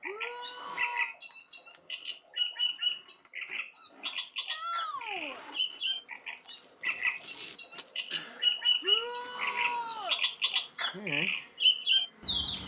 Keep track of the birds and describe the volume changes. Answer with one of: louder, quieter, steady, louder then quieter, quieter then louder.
louder.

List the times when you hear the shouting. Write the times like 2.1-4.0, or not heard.
0.1-1.1, 4.5-5.5, 8.8-10.2.